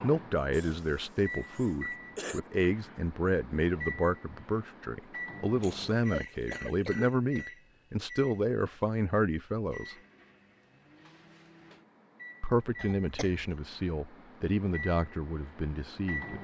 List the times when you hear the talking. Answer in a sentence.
The talking can be heard from 0.0 to 9.9 s and from 12.4 to 16.3 s.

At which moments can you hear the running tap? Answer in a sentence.
The running tap can't be heard in this clip.